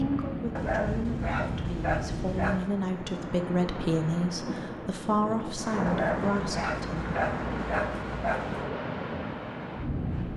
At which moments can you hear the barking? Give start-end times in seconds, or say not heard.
0.6-2.7, 5.8-8.7.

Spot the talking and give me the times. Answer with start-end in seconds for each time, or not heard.
0.0-7.1.